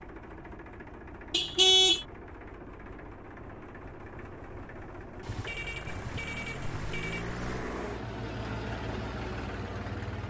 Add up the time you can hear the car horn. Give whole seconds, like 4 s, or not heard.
3 s.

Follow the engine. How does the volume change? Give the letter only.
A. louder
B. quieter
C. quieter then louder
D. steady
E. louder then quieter
A.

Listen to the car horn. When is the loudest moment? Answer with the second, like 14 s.
2 s.